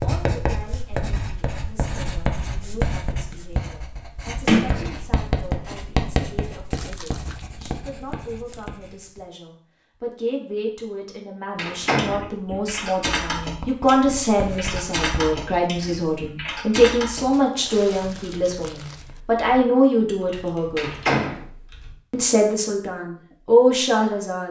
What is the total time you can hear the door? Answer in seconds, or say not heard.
2 s.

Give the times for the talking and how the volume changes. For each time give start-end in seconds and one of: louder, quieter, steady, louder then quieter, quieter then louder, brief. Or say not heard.
0.0-20.9 louder
22.1-24.4 brief.